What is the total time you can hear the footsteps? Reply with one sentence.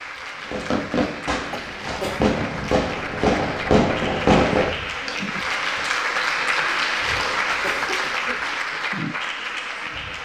The footsteps can't be heard in this clip.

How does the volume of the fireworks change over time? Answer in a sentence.
The volume of the fireworks goes up.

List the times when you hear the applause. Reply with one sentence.
The applause can be heard from 0.0 to 10.2 s.